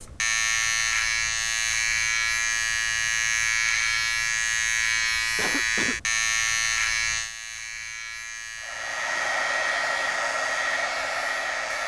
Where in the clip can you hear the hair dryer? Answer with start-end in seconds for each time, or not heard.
8.6-11.8.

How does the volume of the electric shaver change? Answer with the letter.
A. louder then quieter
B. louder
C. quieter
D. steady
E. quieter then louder
C.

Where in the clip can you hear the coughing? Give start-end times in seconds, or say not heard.
5.0-6.0.